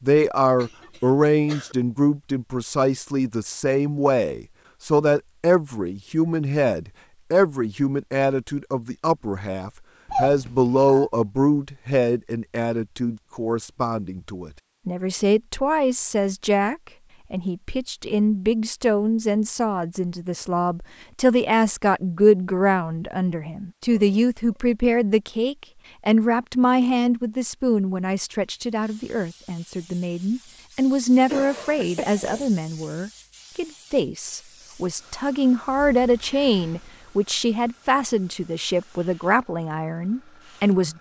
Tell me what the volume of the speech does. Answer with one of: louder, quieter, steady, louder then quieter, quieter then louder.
steady.